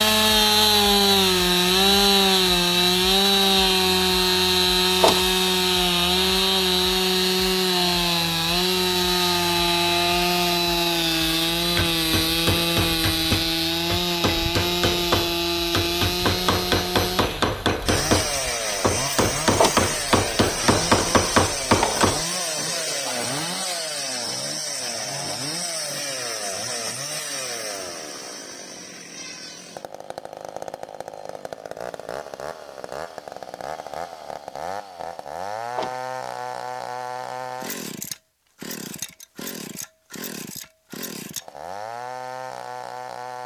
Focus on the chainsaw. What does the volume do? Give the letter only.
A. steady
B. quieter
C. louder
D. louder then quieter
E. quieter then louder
B.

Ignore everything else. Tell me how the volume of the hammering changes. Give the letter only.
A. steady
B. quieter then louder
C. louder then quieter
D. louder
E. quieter
D.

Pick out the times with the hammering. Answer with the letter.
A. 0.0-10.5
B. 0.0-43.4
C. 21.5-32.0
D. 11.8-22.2
D.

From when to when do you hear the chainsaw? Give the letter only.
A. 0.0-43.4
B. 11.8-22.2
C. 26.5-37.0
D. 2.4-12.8
A.